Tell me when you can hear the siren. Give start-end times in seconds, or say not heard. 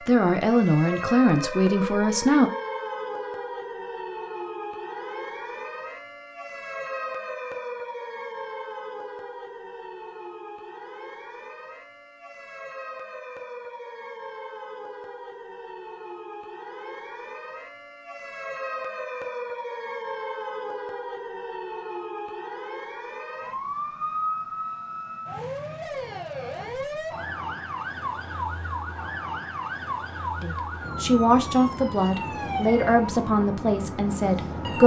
0.0-34.8.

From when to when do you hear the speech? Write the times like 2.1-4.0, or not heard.
0.1-2.5, 30.4-34.8.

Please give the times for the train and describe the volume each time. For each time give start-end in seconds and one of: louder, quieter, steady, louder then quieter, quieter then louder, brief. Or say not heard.
not heard.